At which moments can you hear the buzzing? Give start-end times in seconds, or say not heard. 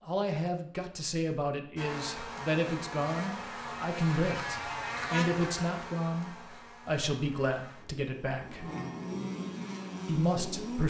1.8-10.8.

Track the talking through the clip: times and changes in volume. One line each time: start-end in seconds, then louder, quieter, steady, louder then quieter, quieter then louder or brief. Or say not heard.
0.0-8.7 steady
10.1-10.8 brief.